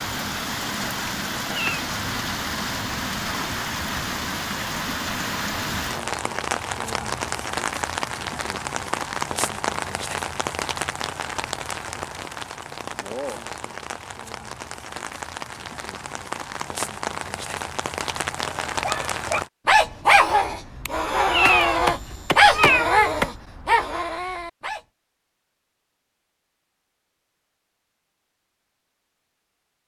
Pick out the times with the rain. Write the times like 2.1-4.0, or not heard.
0.0-19.5.